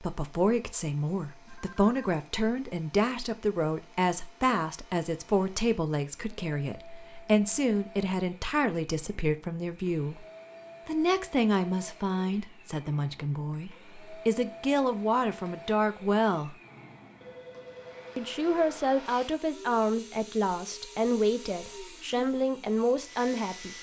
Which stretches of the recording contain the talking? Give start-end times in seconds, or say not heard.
0.0-10.2, 10.8-16.6, 18.1-23.7.